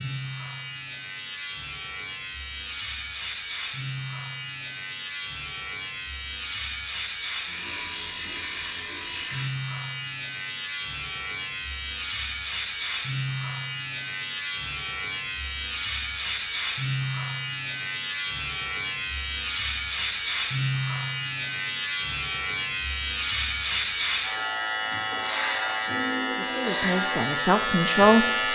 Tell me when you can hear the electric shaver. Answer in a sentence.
You can hear the electric shaver from 0.0 to 28.5 s.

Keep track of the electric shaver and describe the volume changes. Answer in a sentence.
The volume of the electric shaver goes up.